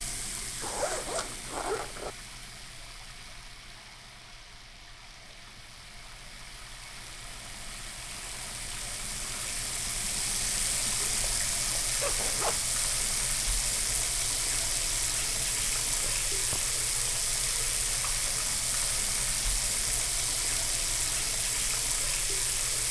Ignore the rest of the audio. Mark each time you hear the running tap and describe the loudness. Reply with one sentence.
You can hear the running tap from 0.0 to 22.8 s, getting louder.